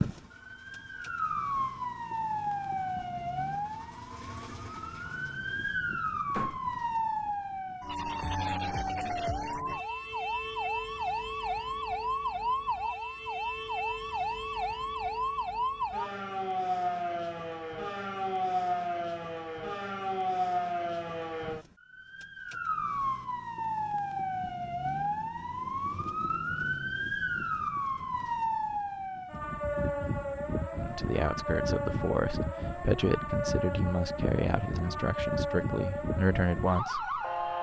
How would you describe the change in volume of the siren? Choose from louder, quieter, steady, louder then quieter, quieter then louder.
steady.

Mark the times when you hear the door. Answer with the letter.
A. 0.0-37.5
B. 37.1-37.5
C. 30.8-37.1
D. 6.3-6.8
D.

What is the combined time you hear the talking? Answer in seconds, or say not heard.
6 s.